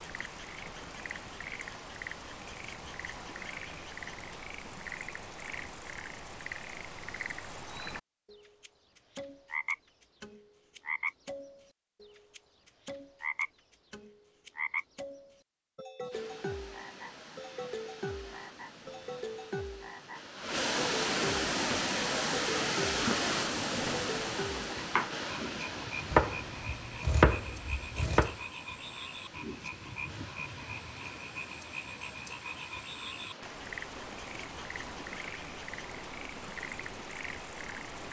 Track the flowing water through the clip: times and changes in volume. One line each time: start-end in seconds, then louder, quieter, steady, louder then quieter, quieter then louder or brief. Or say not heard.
16.1-38.0 louder then quieter.